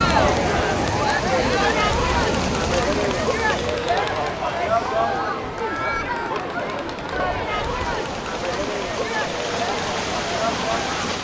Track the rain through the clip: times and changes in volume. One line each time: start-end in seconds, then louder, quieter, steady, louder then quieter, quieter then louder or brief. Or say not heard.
0.0-11.1 quieter then louder.